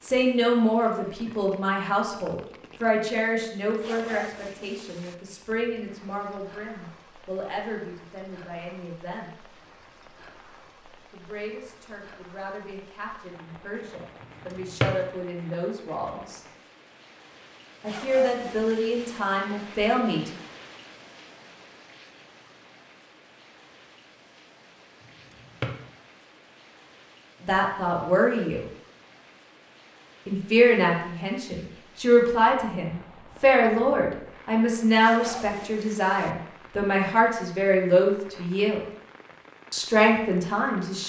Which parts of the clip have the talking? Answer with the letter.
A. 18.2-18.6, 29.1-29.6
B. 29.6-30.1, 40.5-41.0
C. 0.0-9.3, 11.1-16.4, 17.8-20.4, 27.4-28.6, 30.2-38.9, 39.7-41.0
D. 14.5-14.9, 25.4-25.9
C.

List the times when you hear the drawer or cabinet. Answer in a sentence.
The drawer or cabinet can be heard from 14.5 to 14.9 s and from 25.4 to 25.9 s.